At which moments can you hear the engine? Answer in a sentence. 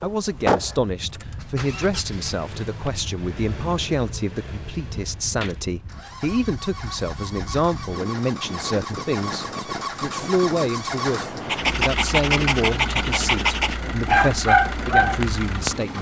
The engine can be heard from 0.0 to 15.9 s.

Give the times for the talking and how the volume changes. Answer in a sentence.
The talking can be heard from 0.0 to 15.9 s, at a steady volume.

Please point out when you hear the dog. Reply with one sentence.
The dog can be heard from 11.4 to 15.7 s.